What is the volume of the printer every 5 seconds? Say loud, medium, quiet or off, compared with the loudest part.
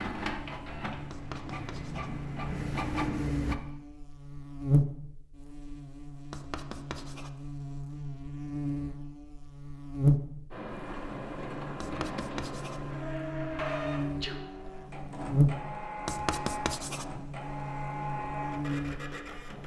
loud, off, loud, loud.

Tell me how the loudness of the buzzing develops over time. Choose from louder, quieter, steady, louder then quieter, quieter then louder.
louder then quieter.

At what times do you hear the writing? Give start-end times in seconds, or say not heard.
1.1-2.1, 6.3-7.3, 11.8-12.8, 16.1-17.1.